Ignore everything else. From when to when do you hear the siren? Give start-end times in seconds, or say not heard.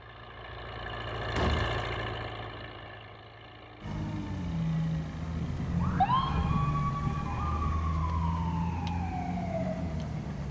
3.8-10.4.